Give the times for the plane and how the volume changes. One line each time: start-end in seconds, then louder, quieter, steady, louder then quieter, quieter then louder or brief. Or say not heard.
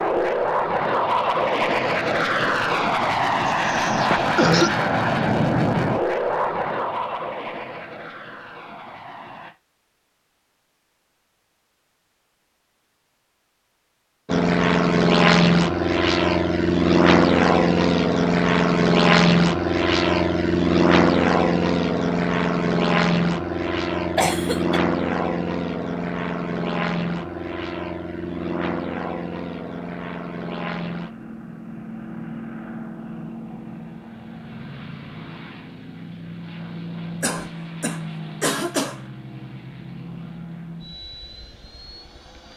0.0-9.6 quieter
14.2-42.5 quieter.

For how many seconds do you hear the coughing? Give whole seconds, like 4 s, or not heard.
4 s.